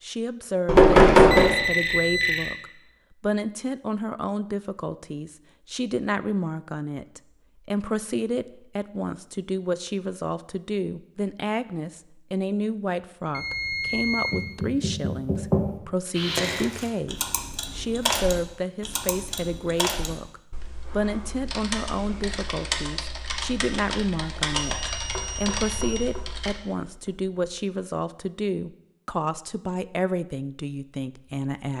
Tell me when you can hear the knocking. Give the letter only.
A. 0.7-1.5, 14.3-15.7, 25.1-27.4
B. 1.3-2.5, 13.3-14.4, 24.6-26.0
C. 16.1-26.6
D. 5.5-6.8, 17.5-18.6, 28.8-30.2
A.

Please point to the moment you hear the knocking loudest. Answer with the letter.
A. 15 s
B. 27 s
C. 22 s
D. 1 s
D.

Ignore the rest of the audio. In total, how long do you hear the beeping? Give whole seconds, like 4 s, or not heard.
4 s.